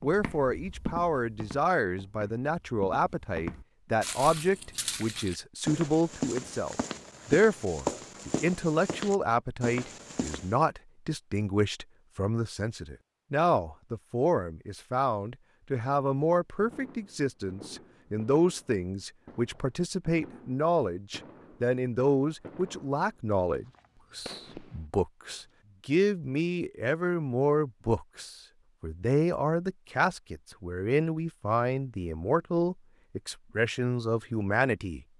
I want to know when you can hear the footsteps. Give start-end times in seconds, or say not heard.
0.0-10.6.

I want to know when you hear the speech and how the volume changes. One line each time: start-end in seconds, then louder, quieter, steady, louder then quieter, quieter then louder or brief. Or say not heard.
0.0-35.0 steady.